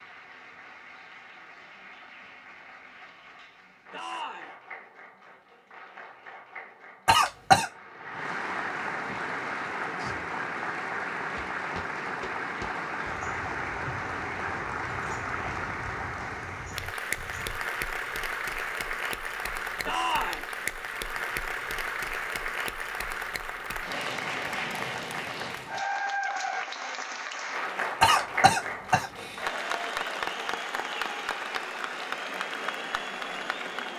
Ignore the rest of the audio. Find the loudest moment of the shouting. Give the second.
20 s.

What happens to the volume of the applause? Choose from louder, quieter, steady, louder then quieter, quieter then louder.
louder.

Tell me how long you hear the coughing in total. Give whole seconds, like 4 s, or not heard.
2 s.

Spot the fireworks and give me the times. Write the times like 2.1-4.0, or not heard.
not heard.